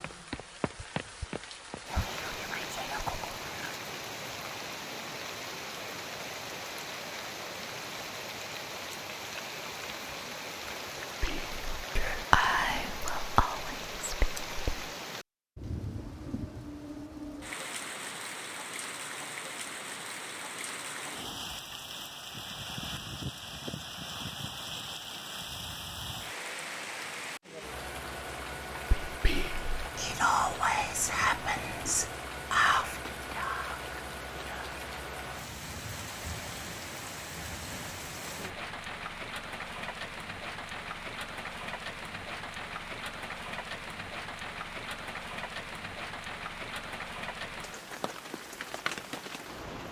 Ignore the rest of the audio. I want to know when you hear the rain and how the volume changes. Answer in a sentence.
You can hear the rain from 0.0 to 49.8 s, at a steady volume.